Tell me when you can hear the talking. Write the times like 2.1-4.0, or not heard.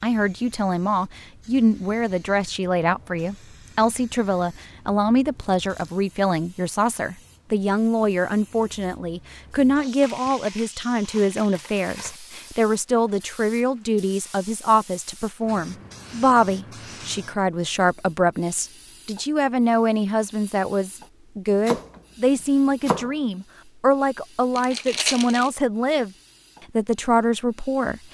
0.0-26.1, 26.8-28.0.